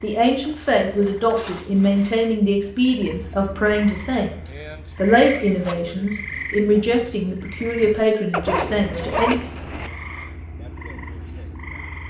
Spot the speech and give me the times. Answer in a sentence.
You can hear the speech from 0.0 to 9.4 s.